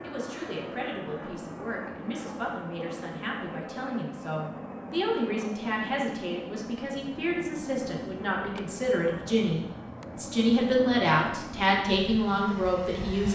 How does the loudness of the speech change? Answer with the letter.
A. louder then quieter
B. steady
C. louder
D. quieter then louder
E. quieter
C.